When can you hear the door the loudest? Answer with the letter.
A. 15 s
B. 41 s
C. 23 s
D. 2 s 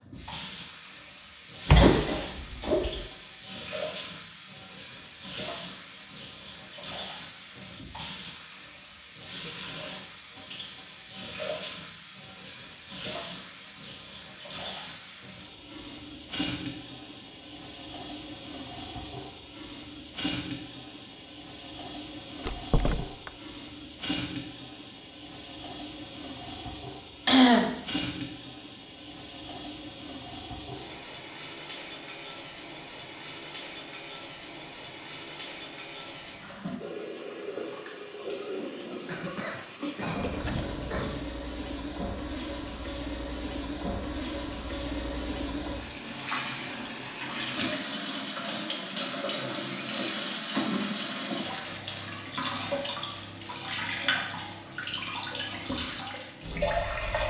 D.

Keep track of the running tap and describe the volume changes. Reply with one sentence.
The loudness of the running tap goes up.